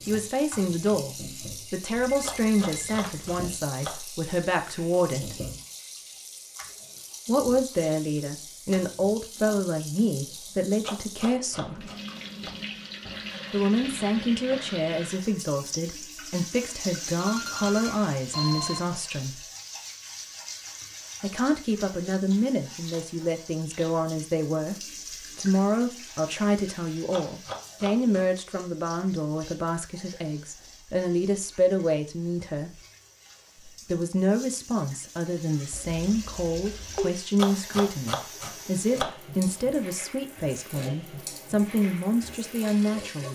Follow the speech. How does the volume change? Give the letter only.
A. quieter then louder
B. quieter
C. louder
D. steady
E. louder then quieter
D.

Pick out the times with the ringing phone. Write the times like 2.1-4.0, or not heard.
1.9-3.4, 17.2-18.8, 35.7-37.1.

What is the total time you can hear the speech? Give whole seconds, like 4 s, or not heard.
37 s.